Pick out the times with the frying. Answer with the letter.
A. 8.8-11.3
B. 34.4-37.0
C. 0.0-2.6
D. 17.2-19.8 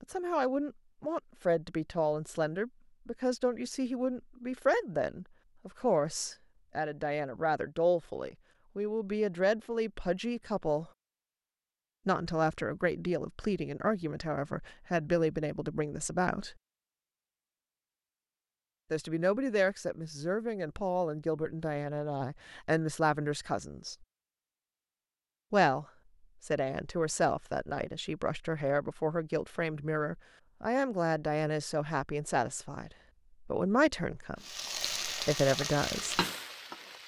B.